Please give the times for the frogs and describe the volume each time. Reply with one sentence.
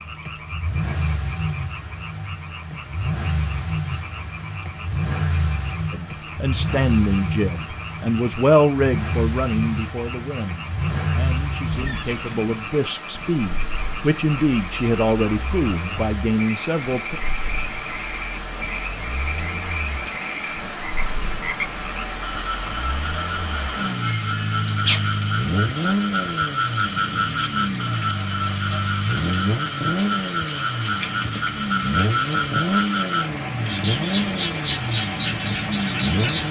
You can hear the frogs from 0.0 to 36.4 s, getting louder.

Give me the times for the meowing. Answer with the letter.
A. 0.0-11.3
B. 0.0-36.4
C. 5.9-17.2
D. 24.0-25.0
D.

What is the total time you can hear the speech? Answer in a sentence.
You can hear the speech for 11 seconds altogether.